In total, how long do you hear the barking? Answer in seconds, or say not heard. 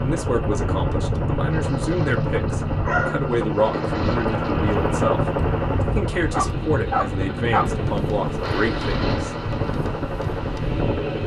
2 s.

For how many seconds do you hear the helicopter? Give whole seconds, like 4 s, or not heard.
11 s.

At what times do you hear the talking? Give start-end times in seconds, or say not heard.
0.0-9.1.